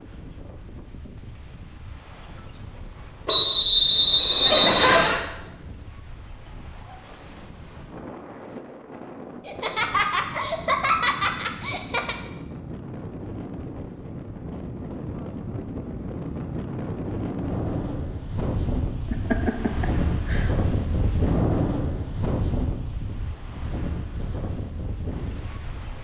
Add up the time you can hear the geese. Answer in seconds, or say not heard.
not heard.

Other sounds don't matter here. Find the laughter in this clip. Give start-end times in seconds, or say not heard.
4.5-5.2, 9.4-12.2, 19.1-20.5.